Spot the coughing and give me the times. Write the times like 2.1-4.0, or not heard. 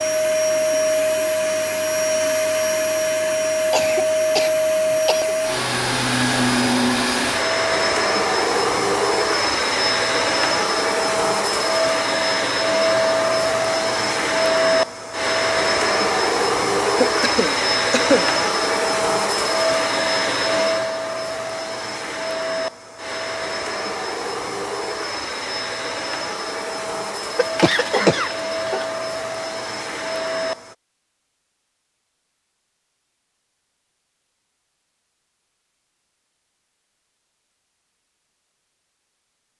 3.7-5.3, 17.0-18.3, 27.4-28.9.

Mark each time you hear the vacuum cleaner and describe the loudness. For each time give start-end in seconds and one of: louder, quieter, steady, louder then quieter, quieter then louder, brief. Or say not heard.
0.0-30.8 quieter.